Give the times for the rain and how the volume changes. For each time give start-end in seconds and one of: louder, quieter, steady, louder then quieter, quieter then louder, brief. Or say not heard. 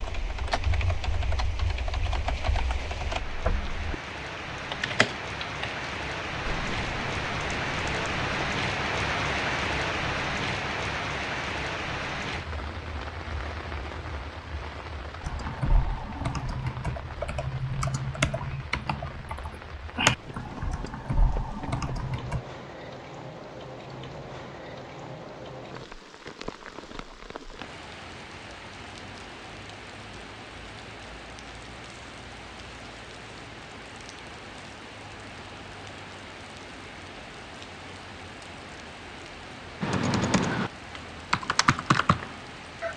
0.0-42.9 quieter.